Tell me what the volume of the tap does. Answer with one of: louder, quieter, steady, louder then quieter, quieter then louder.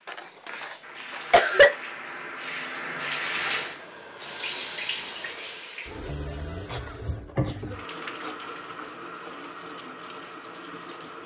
louder then quieter.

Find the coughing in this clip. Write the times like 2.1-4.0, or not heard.
0.1-1.8, 6.7-8.6.